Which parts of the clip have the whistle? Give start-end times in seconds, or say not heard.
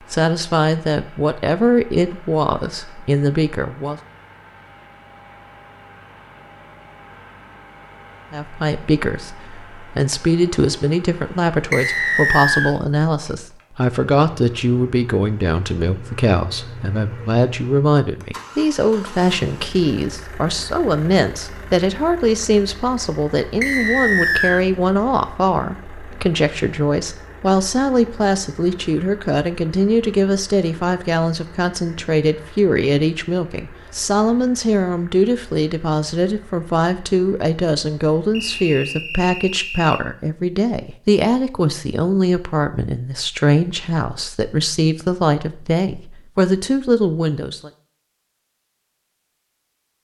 11.7-12.8, 23.6-24.6, 38.3-40.0.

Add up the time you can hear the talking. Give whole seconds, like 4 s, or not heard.
43 s.